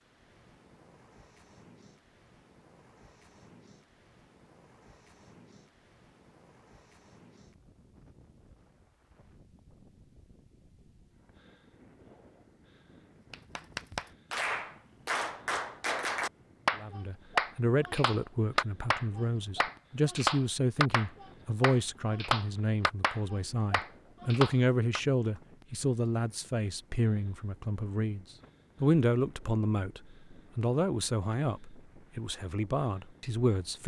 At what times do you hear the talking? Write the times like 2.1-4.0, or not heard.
16.8-33.8.